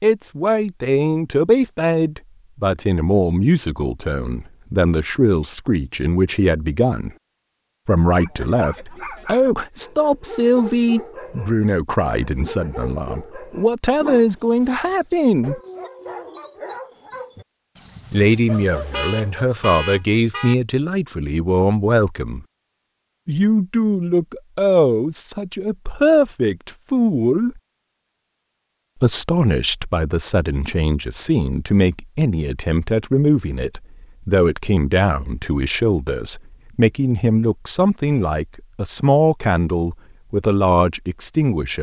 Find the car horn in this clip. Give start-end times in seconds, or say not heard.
18.6-20.6.